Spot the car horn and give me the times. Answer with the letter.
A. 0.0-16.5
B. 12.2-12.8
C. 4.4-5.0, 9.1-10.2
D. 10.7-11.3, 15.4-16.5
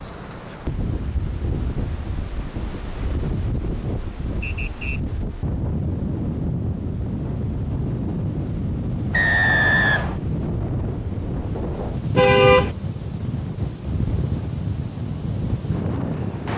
B.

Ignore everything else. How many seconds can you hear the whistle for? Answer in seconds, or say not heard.
2 s.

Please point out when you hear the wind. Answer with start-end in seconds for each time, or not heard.
0.0-16.5.